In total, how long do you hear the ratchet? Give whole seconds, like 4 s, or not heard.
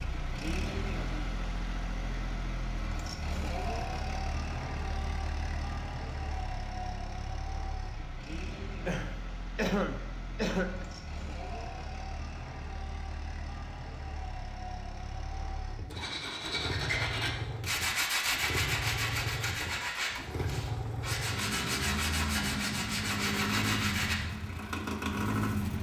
not heard.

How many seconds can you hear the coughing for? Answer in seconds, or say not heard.
2 s.